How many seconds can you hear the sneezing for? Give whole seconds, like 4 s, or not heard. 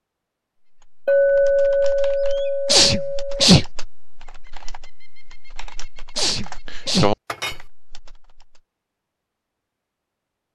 2 s.